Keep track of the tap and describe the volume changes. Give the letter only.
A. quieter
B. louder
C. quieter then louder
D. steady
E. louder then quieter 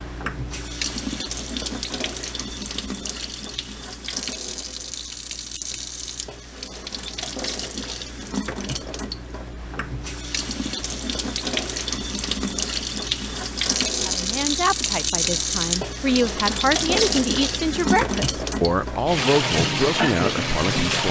B.